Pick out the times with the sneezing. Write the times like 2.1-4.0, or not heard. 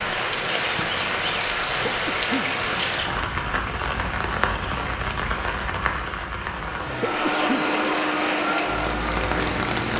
1.6-2.5, 6.8-7.7.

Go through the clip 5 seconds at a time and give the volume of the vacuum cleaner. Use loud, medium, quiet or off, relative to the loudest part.
off, loud.